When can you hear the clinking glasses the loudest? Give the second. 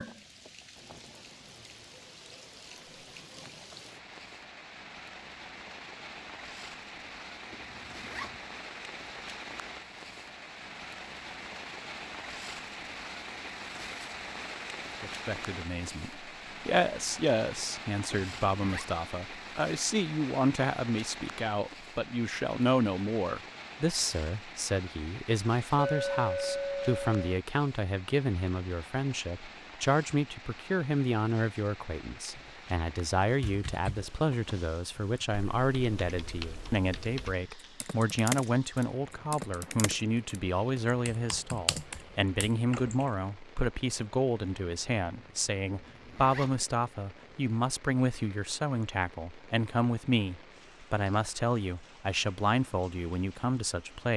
26 s.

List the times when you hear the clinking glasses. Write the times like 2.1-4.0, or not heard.
25.8-27.2.